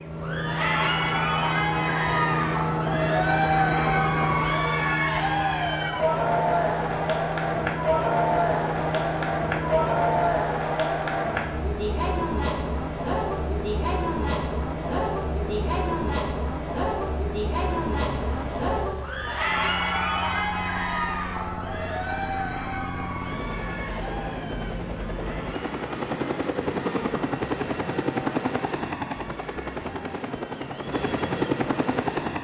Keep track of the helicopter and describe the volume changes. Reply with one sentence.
The volume of the helicopter goes down, then up.